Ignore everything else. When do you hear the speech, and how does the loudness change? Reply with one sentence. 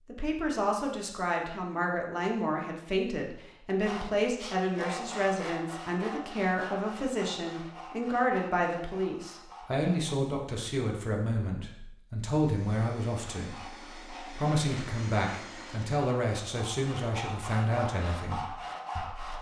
The speech can be heard from 0.1 to 19.3 s, at a steady volume.